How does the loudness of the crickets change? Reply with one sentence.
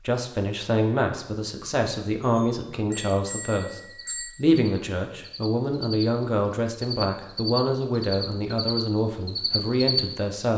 The loudness of the crickets goes up.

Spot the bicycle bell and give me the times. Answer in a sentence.
You can hear the bicycle bell from 2.2 to 4.3 s.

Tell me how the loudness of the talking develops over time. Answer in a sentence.
The volume of the talking stays about the same.